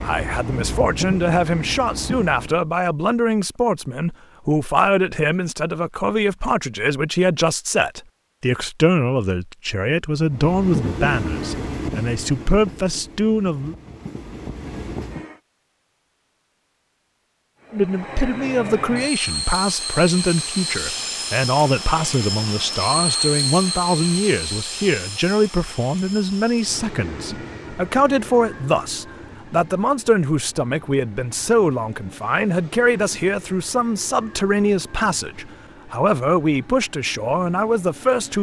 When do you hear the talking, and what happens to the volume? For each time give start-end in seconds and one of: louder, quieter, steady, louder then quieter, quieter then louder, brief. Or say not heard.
0.0-13.8 steady
17.7-38.3 steady.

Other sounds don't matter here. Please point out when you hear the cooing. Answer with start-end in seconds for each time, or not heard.
not heard.